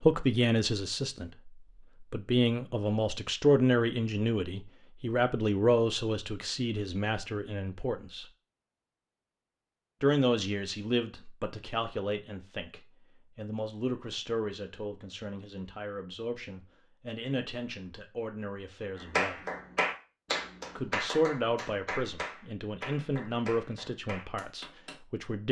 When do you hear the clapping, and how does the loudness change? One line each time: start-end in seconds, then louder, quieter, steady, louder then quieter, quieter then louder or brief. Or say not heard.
18.9-24.9 quieter.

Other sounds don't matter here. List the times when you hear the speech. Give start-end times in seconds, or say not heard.
0.0-8.2, 10.0-19.4, 20.8-25.4.